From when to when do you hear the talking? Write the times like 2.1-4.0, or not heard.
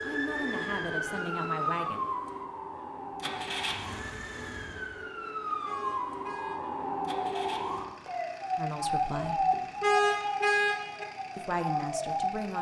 0.0-2.0, 8.6-9.4, 11.3-12.5.